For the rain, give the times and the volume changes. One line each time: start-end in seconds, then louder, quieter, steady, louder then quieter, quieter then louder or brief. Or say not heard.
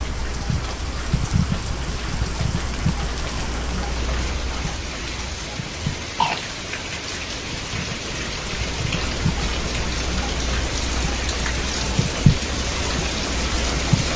0.0-14.1 louder.